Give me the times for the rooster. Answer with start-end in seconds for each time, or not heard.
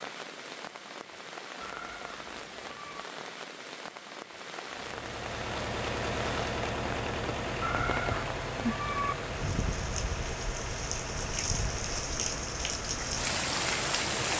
not heard.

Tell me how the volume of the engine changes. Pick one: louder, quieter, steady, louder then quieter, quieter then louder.
quieter.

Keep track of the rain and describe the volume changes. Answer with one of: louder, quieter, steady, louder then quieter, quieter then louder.
louder.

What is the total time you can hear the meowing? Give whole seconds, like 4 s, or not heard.
3 s.